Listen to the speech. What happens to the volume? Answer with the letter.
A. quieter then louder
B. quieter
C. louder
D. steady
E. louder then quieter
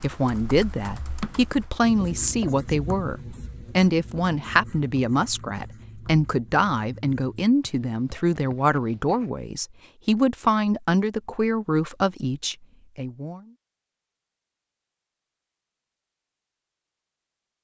D.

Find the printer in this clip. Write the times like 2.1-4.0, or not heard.
not heard.